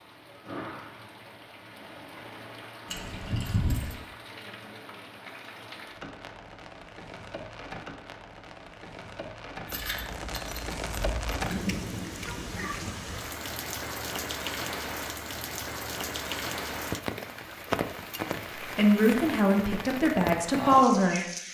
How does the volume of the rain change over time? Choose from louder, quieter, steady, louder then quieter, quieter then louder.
louder.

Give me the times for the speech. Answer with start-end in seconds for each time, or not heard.
18.6-21.2.